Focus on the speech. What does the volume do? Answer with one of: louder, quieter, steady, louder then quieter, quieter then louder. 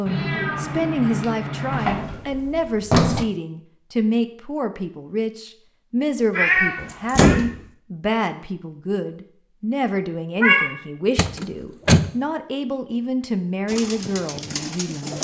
steady.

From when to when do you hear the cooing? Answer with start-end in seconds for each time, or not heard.
13.7-15.2.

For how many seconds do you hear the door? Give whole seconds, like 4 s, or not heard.
3 s.